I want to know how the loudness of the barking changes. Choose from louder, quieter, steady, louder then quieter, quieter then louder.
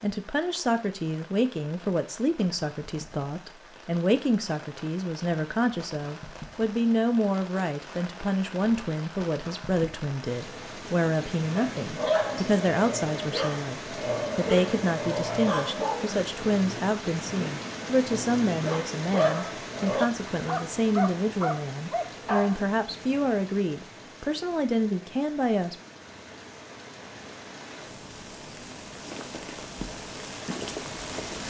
quieter then louder.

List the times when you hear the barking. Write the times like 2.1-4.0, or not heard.
11.6-22.6.